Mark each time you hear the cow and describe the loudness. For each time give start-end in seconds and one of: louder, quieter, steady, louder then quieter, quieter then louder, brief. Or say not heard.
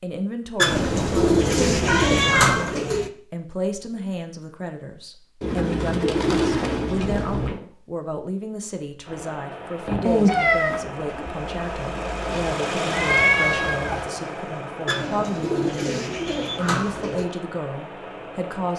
not heard.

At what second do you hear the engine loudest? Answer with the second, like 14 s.
13 s.